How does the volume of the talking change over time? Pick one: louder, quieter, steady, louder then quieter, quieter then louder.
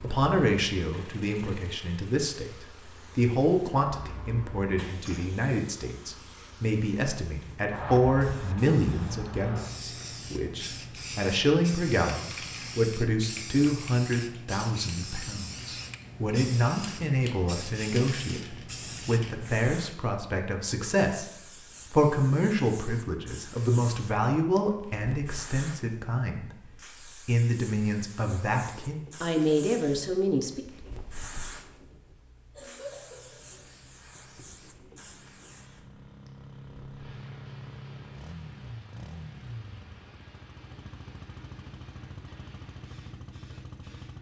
steady.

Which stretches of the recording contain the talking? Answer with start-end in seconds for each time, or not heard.
0.0-26.5, 27.2-30.6.